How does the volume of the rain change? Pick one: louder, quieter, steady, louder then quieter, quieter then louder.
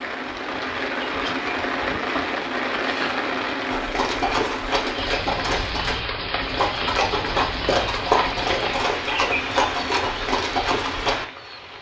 steady.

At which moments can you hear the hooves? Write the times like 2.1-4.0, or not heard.
3.6-11.2.